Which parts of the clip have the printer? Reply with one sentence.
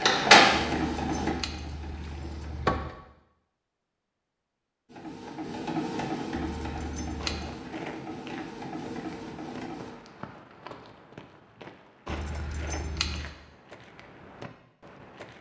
You can hear the printer from 0.0 to 2.8 s and from 4.8 to 9.9 s.